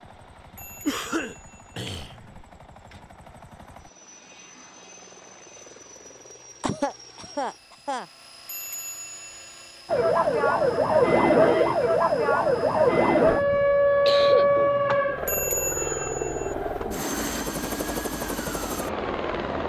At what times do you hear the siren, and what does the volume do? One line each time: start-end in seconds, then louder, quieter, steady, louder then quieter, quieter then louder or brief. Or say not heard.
9.8-19.6 quieter.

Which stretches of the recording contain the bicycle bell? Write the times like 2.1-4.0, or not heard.
0.6-1.7, 8.4-9.7, 15.2-16.6.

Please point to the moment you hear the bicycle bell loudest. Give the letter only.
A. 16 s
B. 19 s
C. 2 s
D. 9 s
A.